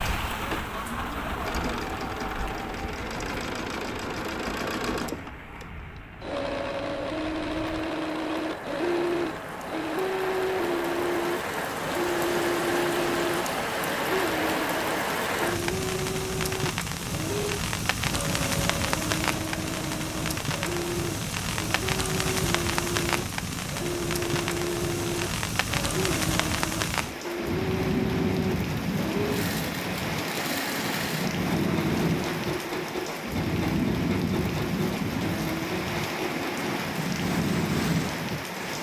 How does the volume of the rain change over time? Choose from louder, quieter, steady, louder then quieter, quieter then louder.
louder.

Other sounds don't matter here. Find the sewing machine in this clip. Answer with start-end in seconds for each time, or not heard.
0.0-38.7.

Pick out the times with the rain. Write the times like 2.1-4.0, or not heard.
0.0-38.7.